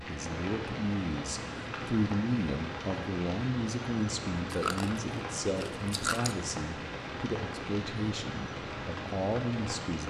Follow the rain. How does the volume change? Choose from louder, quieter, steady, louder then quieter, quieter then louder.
steady.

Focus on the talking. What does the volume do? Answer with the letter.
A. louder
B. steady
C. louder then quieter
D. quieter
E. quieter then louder
B.